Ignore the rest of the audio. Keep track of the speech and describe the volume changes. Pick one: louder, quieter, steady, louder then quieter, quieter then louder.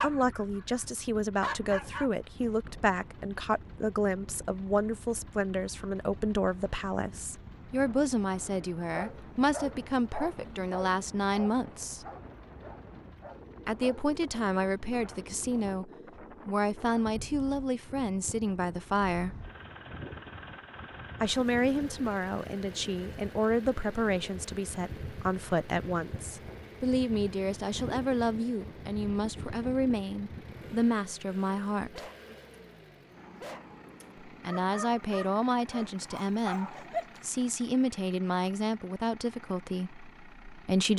steady.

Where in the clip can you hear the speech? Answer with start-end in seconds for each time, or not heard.
0.0-12.1, 13.7-19.4, 21.2-32.0, 34.2-40.9.